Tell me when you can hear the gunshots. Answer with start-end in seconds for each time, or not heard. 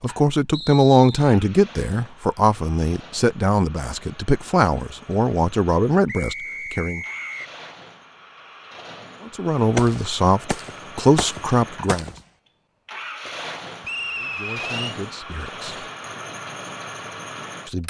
9.8-12.2.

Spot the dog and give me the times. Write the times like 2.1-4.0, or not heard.
not heard.